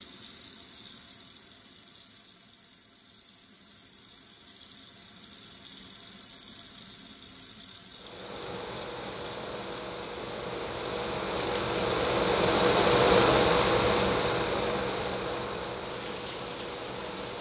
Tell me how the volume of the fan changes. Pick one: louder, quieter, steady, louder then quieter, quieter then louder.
louder then quieter.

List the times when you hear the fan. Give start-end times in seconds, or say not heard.
8.0-17.3.